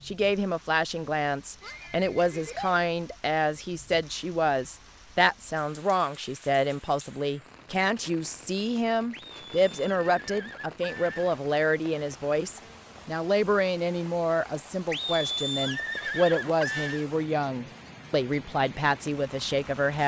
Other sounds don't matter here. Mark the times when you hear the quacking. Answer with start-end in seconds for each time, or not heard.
not heard.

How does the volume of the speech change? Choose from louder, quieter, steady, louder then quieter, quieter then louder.
steady.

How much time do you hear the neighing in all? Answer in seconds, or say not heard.
6 s.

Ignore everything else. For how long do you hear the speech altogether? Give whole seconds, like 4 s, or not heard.
20 s.